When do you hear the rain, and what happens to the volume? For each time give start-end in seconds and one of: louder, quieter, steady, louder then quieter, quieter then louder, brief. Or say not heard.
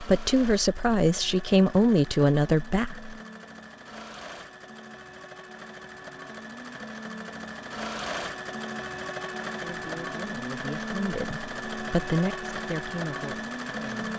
not heard.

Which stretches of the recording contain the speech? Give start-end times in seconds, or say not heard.
0.0-3.1, 9.7-14.1.